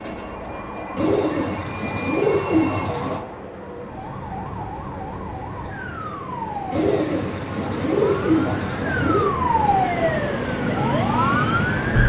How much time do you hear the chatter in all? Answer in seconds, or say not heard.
not heard.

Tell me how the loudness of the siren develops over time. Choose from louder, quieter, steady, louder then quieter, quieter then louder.
louder.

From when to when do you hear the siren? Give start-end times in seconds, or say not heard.
0.0-12.0.